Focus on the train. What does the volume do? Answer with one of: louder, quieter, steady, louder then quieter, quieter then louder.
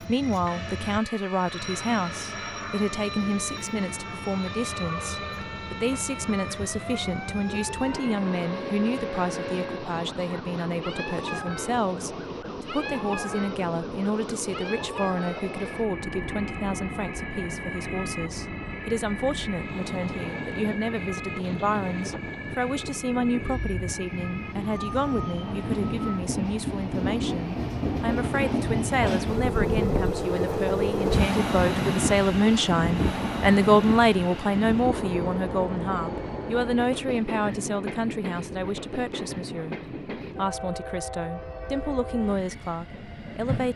louder then quieter.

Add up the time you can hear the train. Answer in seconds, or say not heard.
44 s.